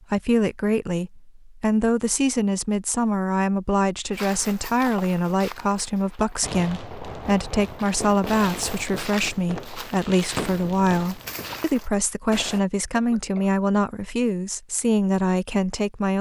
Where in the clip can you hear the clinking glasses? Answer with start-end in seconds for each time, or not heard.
not heard.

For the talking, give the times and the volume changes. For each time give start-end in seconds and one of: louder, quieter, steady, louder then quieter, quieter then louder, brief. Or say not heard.
0.1-16.1 steady.